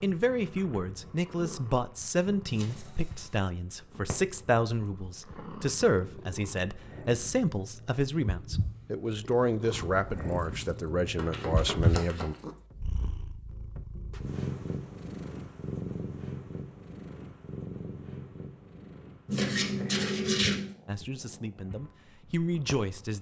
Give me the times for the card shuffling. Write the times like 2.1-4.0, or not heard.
2.5-3.4, 11.2-12.2, 19.2-20.8.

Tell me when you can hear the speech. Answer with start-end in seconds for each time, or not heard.
0.0-12.3, 20.9-23.1.